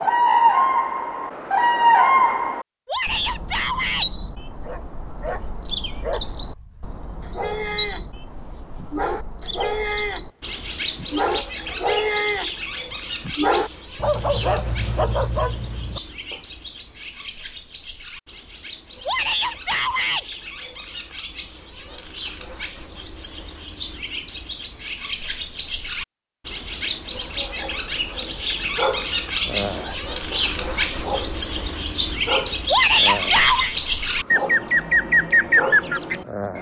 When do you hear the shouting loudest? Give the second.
33 s.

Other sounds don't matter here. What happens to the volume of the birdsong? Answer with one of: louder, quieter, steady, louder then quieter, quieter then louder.
quieter then louder.